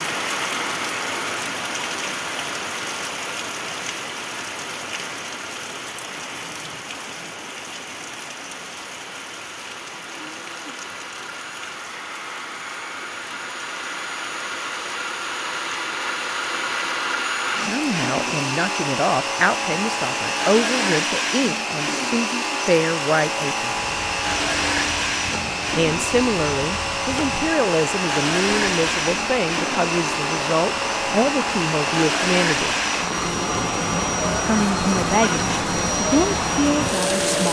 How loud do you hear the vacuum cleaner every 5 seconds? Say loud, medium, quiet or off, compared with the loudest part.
medium, quiet, medium, loud, loud, loud, loud, loud.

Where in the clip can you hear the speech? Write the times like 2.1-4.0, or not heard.
17.6-23.8, 25.8-32.8, 34.5-37.4.